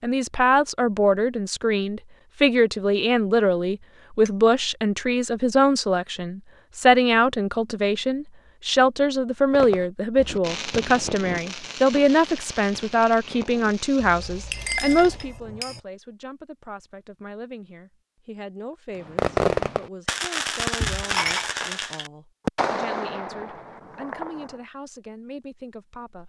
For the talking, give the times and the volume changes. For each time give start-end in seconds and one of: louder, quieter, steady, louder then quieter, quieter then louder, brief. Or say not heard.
0.0-26.2 quieter.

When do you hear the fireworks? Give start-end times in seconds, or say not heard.
9.5-15.3, 19.0-24.6.